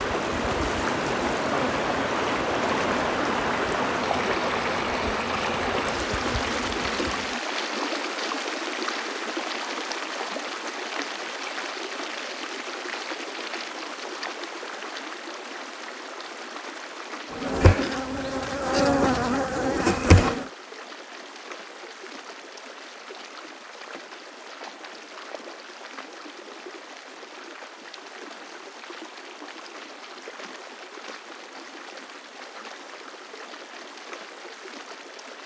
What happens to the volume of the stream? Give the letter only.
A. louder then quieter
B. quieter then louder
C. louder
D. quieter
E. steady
D.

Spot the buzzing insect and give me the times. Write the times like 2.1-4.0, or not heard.
0.0-7.4, 17.3-20.5.